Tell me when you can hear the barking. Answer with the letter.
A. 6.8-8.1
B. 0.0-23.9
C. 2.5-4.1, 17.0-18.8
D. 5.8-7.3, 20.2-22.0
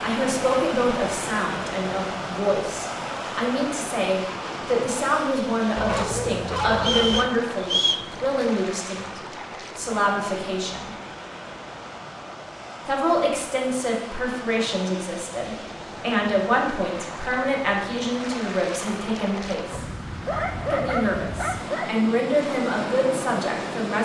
D.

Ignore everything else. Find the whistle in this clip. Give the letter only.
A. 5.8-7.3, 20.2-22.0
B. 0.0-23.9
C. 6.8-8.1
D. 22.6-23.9
C.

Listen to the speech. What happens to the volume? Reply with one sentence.
The volume of the speech stays about the same.